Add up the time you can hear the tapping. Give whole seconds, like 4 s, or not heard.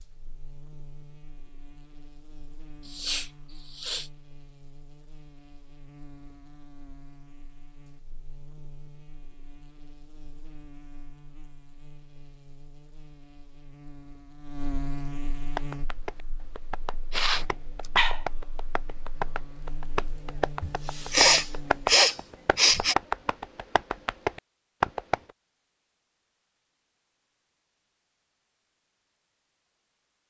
10 s.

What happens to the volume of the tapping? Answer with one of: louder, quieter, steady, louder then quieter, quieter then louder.
louder.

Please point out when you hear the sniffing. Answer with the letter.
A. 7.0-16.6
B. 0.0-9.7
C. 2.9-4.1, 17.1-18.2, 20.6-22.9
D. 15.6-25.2
C.